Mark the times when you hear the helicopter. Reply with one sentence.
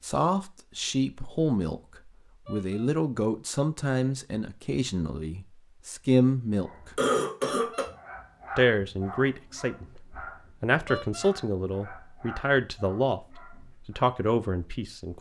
You can't hear the helicopter here.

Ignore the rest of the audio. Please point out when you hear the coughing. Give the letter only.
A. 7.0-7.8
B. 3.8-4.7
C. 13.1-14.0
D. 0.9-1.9
A.